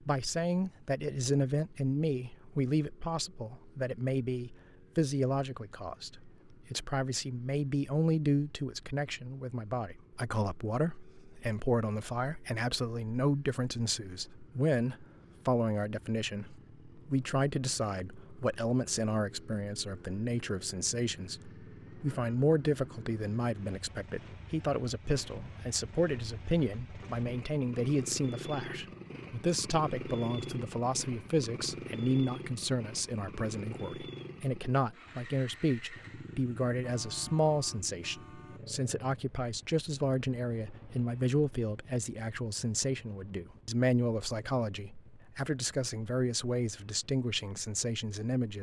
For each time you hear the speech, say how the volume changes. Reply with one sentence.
The speech can be heard from 0.1 to 48.5 s, at a steady volume.